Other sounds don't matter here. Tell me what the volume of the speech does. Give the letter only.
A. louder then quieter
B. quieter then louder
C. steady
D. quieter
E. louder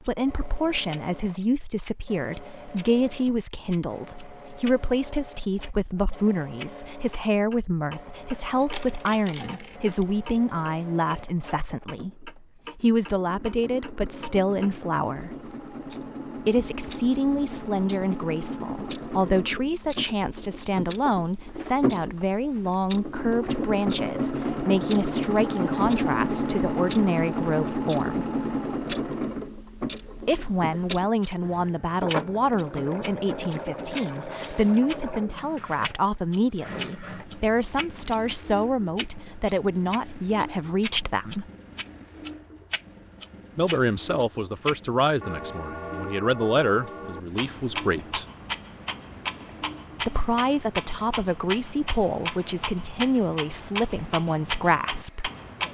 C.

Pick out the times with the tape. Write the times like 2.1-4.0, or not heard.
not heard.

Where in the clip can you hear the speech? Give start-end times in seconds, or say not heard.
0.1-15.3, 16.4-28.2, 30.2-41.5, 43.5-48.2, 50.0-55.3.